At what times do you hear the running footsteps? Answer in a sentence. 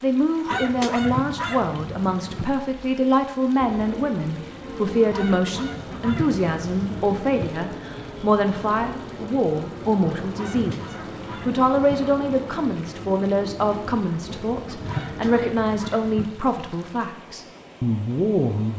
The running footsteps can't be heard in this clip.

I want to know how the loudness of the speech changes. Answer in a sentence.
The loudness of the speech stays about the same.